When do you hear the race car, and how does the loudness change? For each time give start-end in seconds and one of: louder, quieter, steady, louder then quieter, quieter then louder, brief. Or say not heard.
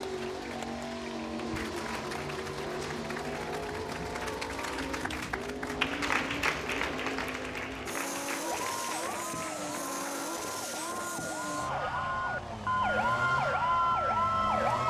0.0-14.8 steady.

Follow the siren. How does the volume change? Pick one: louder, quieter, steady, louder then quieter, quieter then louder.
louder.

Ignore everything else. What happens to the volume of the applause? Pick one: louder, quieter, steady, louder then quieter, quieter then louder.
louder then quieter.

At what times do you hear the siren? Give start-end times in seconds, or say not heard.
8.4-14.8.